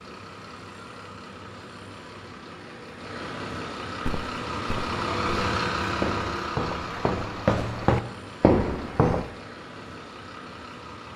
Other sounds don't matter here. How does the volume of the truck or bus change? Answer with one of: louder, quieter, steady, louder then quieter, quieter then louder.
louder then quieter.